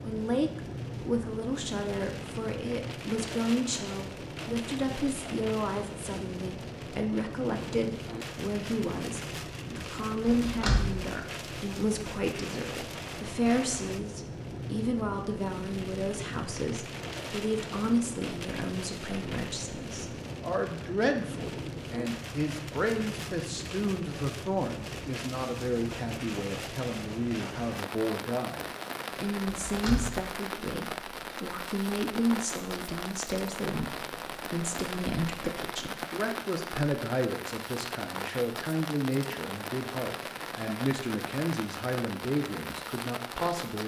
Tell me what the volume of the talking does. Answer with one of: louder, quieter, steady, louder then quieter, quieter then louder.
steady.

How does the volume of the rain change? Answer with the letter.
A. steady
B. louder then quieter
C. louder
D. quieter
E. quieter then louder
A.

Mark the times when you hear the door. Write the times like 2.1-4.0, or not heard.
10.4-10.9, 29.4-30.1.